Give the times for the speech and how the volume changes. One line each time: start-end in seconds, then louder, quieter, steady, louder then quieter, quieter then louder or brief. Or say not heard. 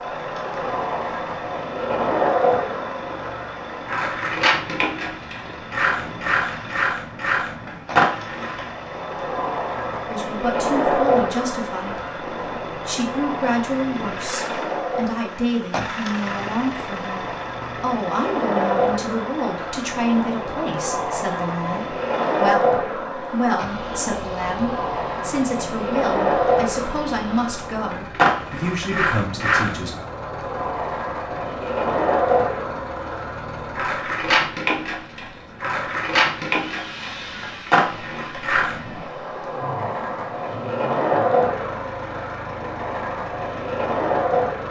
10.1-29.9 steady.